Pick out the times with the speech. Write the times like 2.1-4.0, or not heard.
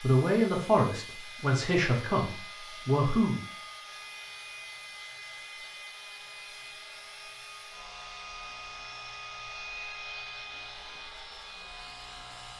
0.0-3.4.